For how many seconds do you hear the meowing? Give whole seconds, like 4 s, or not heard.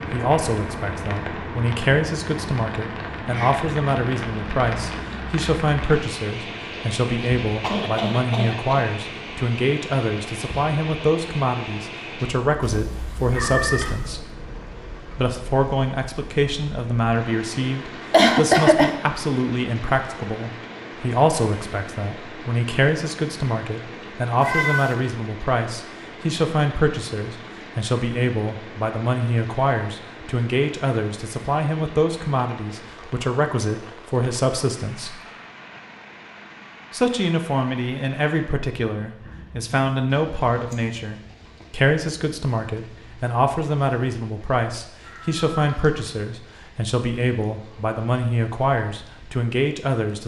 3 s.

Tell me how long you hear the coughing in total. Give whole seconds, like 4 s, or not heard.
3 s.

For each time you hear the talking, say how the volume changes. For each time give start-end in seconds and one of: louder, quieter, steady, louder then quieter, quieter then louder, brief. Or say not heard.
0.1-14.2 steady
15.2-35.2 steady
36.9-50.2 steady.